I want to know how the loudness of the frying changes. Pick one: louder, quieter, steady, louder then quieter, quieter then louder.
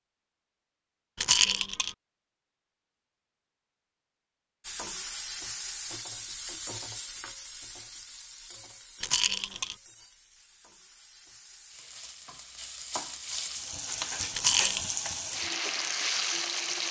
quieter then louder.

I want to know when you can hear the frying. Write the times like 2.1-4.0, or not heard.
4.6-16.8.